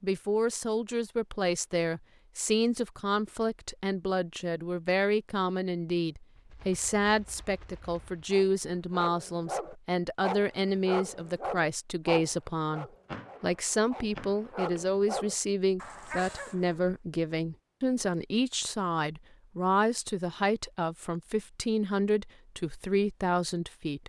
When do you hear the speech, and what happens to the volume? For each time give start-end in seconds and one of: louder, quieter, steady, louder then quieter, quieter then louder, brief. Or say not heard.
0.0-24.0 steady.